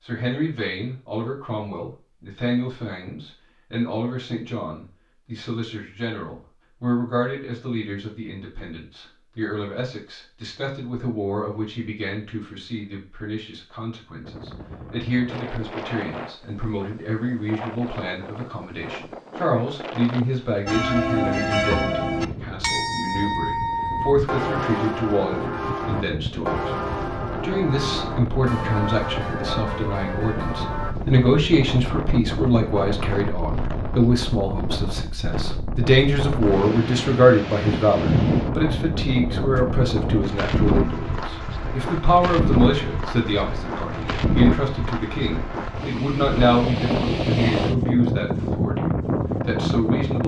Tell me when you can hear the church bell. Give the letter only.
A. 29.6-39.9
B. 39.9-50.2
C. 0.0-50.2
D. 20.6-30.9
D.